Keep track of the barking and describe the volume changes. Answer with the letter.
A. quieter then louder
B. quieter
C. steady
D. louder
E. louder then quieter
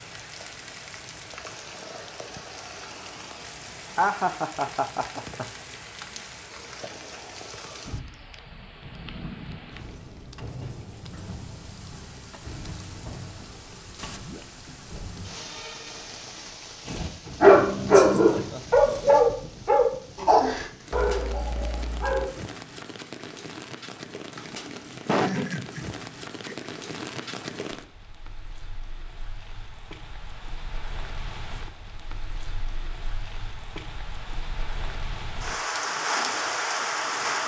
B.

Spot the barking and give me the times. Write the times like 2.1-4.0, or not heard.
16.9-22.3.